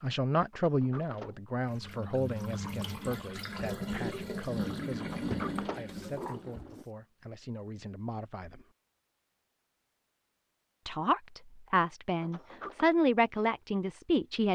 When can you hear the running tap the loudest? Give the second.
5 s.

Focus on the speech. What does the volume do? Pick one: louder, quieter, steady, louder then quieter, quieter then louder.
quieter then louder.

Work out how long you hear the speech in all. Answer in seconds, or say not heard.
12 s.